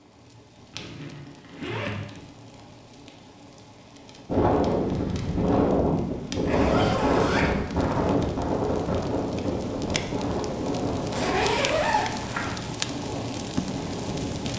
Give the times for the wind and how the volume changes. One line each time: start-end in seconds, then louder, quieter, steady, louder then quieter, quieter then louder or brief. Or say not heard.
4.2-14.5 quieter.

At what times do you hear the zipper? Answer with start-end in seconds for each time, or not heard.
0.7-2.2, 6.5-7.5, 11.1-12.6.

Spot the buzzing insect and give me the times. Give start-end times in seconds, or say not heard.
not heard.